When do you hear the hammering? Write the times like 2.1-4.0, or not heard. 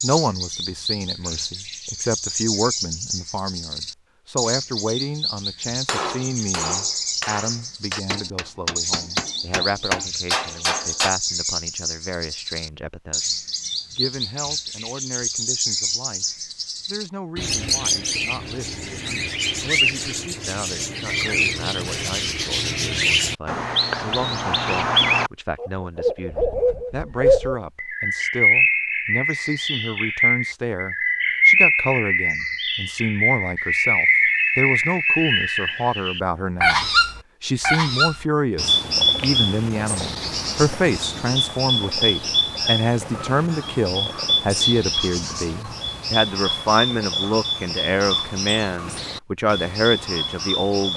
5.8-11.1.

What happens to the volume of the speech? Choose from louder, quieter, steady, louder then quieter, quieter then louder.
quieter then louder.